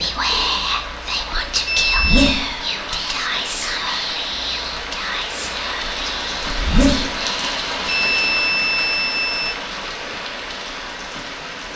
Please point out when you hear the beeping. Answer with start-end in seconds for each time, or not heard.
1.6-2.2, 7.8-9.6.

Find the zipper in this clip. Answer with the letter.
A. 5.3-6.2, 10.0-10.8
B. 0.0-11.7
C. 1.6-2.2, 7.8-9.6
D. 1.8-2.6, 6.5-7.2
D.